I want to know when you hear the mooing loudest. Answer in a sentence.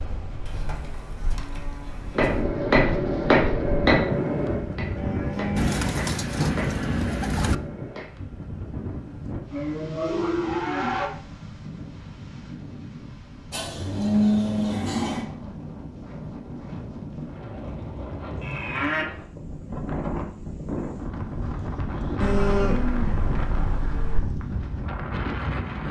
The loudest moment of the mooing is at 14 seconds.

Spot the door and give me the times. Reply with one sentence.
You can't hear the door here.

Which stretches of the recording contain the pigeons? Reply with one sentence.
You can hear the pigeons from 5.5 to 7.5 s.